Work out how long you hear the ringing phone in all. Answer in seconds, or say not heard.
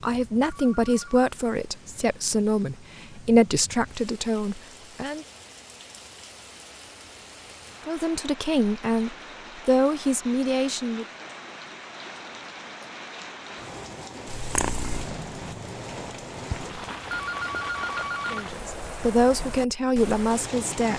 2 s.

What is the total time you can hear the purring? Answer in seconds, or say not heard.
3 s.